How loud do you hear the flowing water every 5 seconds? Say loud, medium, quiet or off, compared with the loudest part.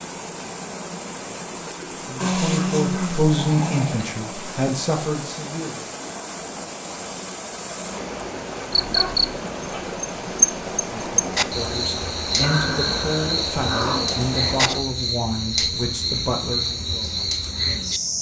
loud, loud, loud, off.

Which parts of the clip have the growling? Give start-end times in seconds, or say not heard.
2.2-4.0, 8.7-10.4, 12.4-14.2.